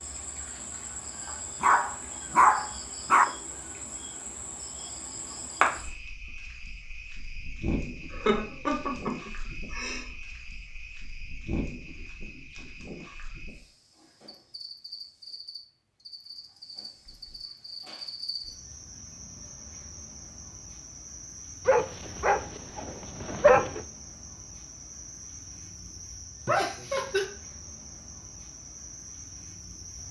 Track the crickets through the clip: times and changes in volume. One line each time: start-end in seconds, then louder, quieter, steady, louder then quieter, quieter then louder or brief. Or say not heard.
0.0-30.0 quieter.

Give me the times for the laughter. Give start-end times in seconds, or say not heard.
8.1-10.1, 26.4-27.2.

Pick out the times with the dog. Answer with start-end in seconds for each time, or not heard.
1.6-3.2, 21.6-23.8.